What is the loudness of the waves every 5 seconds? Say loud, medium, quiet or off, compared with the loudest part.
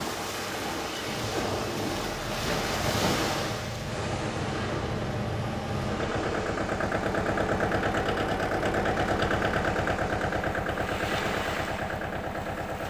loud, medium, medium.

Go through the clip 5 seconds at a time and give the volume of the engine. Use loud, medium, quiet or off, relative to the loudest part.
medium, loud, loud.